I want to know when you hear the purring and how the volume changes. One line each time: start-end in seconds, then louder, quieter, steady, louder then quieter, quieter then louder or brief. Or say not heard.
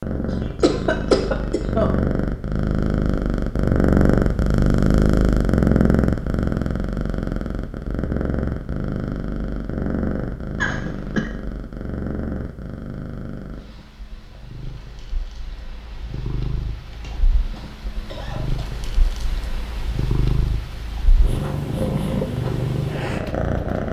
0.0-23.8 quieter then louder.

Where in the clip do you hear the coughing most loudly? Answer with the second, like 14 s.
1 s.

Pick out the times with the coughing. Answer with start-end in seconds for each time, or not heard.
0.3-1.9, 10.6-11.3, 16.9-18.6.